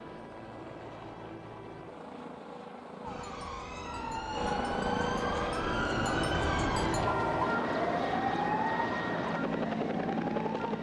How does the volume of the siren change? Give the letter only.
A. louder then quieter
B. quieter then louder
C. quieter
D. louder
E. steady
A.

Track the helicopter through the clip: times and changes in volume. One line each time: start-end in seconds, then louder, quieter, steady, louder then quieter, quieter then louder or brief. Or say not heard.
0.0-10.7 louder.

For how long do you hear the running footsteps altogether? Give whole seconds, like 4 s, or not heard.
not heard.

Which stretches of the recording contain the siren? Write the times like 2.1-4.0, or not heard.
3.0-10.7.